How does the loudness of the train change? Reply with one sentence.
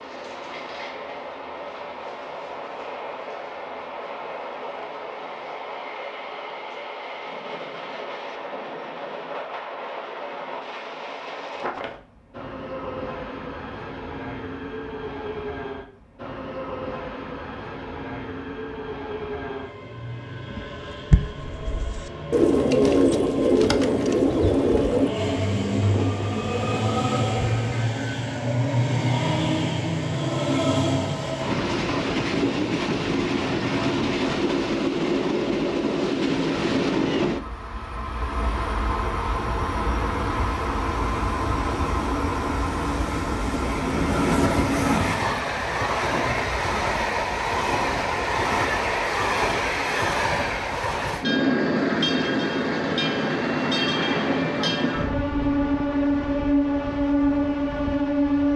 The volume of the train goes up.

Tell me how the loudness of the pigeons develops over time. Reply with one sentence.
The volume of the pigeons goes up, then down.